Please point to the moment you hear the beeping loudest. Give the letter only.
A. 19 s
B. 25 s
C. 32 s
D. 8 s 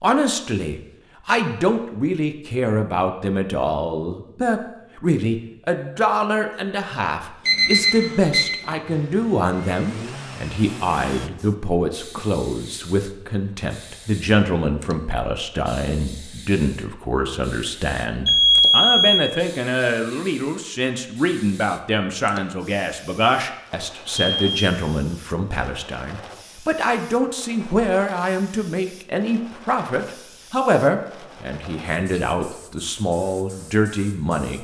A.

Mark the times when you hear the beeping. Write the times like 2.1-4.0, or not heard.
7.5-8.6, 18.2-19.2, 24.1-24.6.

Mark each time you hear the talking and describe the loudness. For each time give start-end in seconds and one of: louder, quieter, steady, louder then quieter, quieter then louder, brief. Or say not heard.
0.0-34.5 steady.